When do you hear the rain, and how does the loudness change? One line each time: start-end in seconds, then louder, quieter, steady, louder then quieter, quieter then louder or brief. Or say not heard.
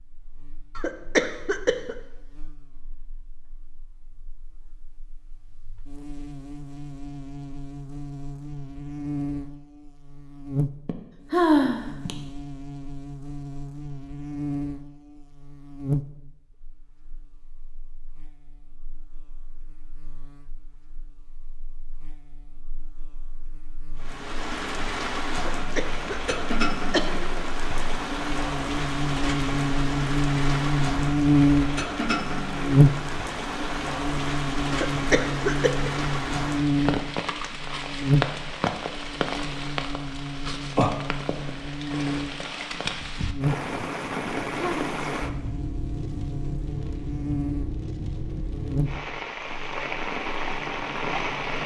23.9-51.6 steady.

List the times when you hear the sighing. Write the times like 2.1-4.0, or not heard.
10.8-12.2, 44.1-44.9.